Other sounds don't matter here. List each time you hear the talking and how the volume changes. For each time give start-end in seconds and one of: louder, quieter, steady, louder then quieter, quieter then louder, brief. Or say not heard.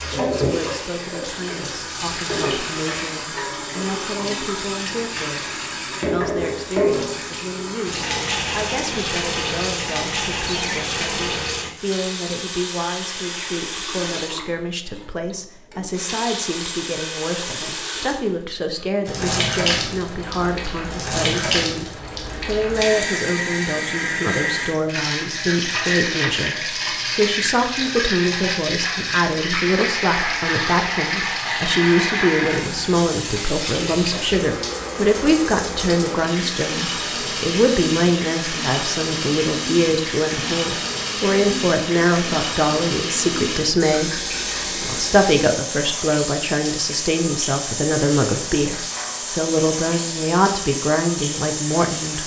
0.1-52.2 louder.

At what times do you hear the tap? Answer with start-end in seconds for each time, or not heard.
0.0-52.2.